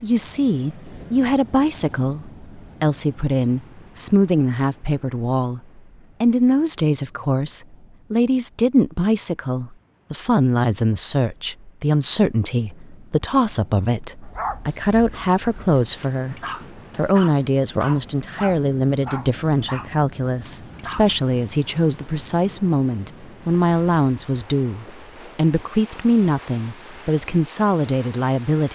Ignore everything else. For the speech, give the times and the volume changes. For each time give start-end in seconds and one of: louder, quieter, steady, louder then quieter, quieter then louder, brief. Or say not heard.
0.0-16.4 steady
16.9-28.6 steady.